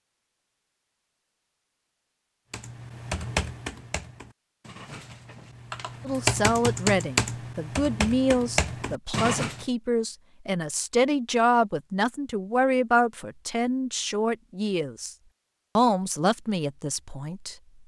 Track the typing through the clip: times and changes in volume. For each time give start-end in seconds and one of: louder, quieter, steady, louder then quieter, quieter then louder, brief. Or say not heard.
2.5-9.7 quieter then louder.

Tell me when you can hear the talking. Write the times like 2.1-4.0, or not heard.
6.0-15.2, 15.8-17.6.